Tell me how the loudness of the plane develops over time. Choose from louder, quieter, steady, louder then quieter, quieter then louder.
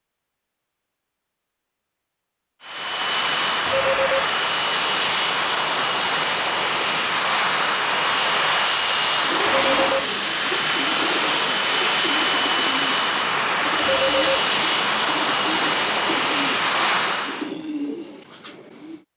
steady.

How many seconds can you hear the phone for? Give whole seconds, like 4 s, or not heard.
2 s.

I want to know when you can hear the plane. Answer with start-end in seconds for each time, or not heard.
2.6-17.6.